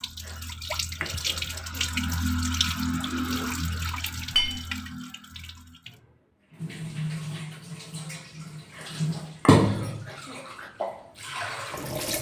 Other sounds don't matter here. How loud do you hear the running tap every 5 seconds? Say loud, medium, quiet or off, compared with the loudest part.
loud, loud, medium.